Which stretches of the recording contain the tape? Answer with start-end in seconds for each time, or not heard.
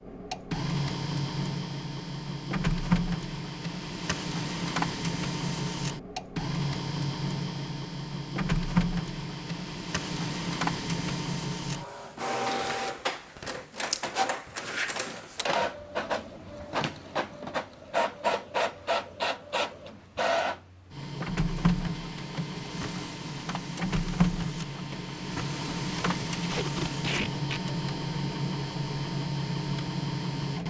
26.4-27.6.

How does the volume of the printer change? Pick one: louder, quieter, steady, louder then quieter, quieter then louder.
steady.